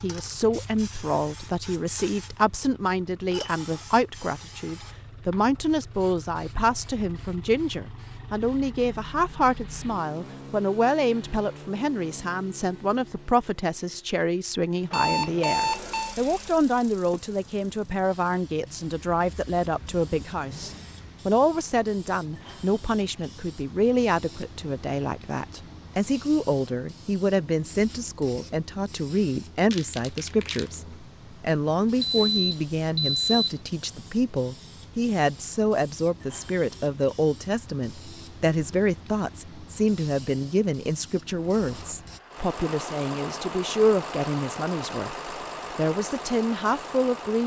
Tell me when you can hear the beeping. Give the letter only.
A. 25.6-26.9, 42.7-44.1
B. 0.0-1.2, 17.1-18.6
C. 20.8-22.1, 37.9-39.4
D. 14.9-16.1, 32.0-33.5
D.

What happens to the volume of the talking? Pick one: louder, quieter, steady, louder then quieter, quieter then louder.
steady.